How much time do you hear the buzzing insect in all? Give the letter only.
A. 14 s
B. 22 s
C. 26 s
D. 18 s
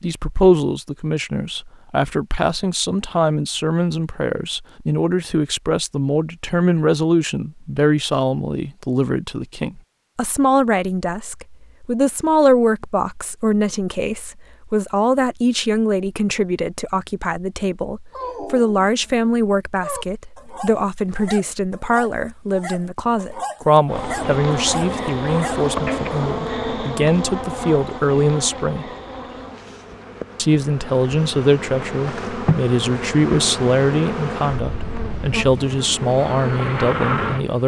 A.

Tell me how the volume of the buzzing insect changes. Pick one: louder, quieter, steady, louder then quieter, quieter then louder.
quieter then louder.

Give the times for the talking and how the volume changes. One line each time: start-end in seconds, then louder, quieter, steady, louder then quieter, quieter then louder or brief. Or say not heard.
0.0-28.9 steady
30.4-37.6 steady.